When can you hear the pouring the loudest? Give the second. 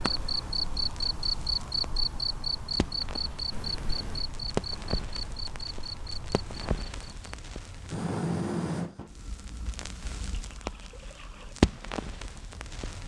4 s.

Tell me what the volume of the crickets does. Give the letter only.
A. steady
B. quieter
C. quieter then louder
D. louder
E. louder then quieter
B.